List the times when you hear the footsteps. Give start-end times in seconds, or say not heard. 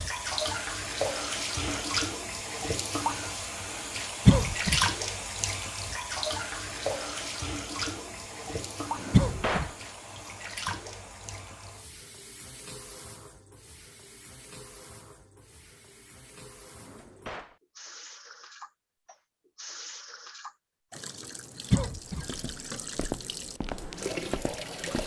22.2-25.0.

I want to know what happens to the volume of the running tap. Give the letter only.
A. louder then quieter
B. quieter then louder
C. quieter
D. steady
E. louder
B.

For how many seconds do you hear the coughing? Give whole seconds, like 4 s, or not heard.
2 s.